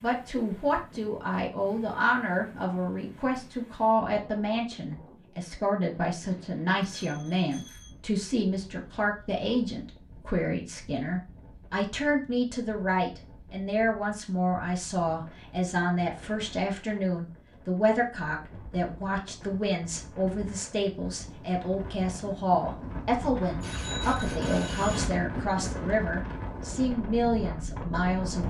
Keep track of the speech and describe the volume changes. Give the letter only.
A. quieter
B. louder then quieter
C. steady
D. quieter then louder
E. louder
C.